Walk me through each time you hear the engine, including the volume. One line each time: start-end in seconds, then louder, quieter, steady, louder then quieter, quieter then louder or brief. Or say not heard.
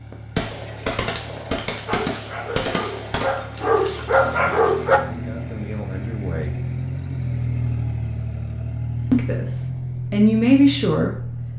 0.0-11.5 louder.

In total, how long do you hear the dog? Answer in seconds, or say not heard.
3 s.